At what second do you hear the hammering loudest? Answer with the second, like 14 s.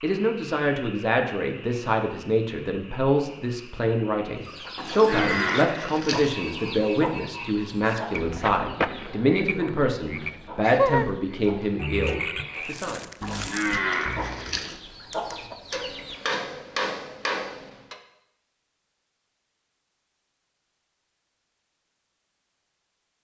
17 s.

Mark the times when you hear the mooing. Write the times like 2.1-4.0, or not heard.
4.8-6.3, 13.2-14.8.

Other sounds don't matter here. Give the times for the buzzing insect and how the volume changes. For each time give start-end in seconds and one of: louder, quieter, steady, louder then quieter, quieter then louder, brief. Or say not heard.
not heard.